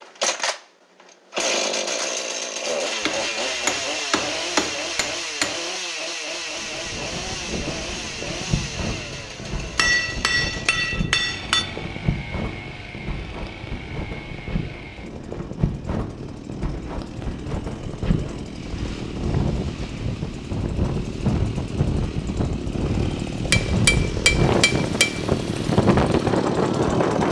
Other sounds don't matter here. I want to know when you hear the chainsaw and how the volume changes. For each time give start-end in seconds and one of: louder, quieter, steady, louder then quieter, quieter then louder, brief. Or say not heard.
0.0-27.2 quieter then louder.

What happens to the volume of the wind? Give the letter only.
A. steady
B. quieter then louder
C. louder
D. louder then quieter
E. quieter
C.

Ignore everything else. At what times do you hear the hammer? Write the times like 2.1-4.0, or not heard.
3.0-5.5, 9.8-11.7, 23.5-25.3.